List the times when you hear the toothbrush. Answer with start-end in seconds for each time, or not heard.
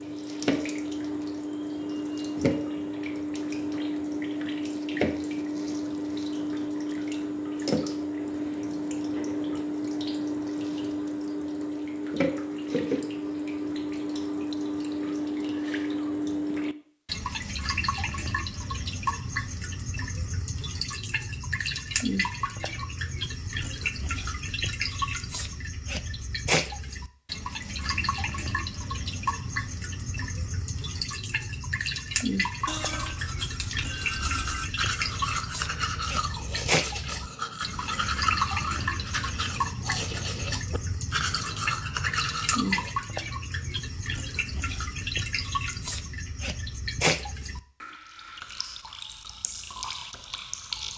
32.6-43.0.